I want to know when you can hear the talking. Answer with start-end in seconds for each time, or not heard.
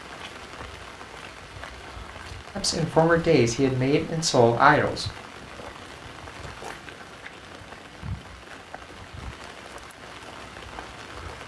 2.5-5.0.